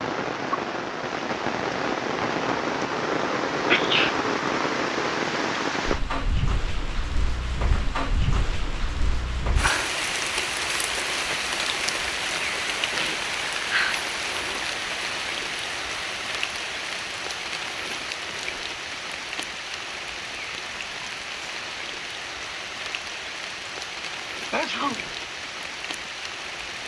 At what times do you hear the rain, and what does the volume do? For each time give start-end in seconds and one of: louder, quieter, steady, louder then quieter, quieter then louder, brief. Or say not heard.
0.0-26.8 quieter.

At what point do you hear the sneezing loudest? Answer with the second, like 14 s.
4 s.